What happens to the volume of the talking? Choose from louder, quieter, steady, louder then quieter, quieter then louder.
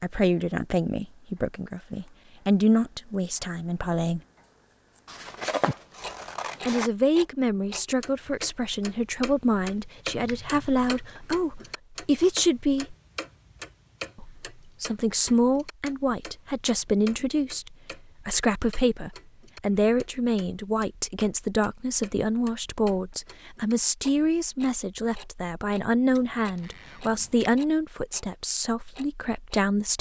steady.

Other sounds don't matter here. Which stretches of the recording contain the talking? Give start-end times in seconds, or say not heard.
0.0-4.2, 6.7-12.9, 14.2-29.9.